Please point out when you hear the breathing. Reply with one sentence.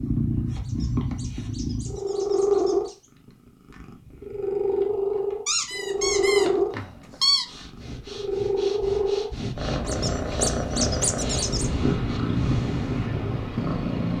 The breathing can be heard from 6.0 to 13.1 s.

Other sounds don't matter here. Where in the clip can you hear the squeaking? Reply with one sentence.
You can hear the squeaking from 0.6 to 3.1 s, from 5.5 to 7.5 s and from 9.8 to 11.7 s.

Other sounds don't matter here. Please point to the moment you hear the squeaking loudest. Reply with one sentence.
The loudest moment of the squeaking is at 7 seconds.